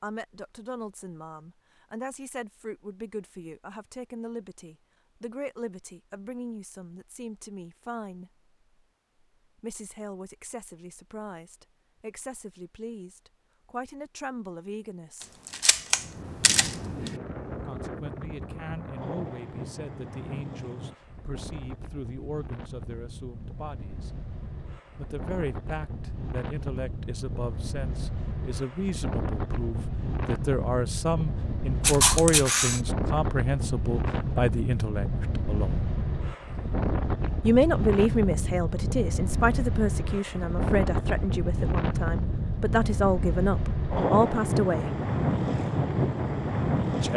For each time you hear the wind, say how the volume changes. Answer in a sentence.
The wind can be heard from 15.9 to 47.1 s, getting louder.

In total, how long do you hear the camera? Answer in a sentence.
The camera can be heard for 3 seconds in total.